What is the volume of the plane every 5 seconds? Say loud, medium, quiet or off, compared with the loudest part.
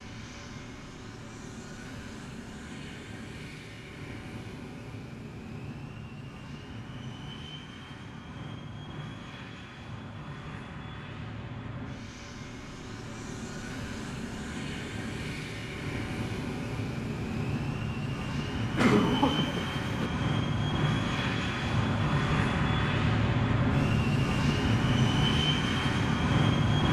quiet, quiet, quiet, medium, loud, loud.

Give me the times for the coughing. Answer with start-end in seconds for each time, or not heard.
18.8-20.1.